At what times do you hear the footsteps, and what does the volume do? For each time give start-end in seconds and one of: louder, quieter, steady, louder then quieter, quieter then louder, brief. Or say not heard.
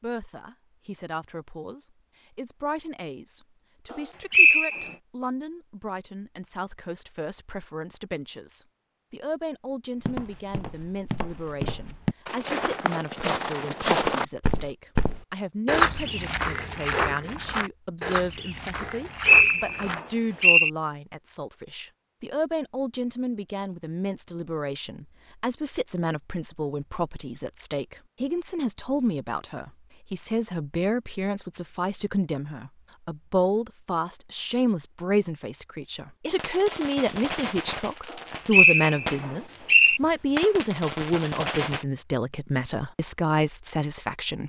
10.0-20.4 louder then quieter.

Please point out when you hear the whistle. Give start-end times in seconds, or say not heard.
3.9-4.9, 18.8-20.7, 38.1-40.0.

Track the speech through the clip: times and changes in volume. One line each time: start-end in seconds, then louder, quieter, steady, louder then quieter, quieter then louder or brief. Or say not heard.
0.0-44.4 louder.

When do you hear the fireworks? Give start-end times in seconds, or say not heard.
36.3-41.9.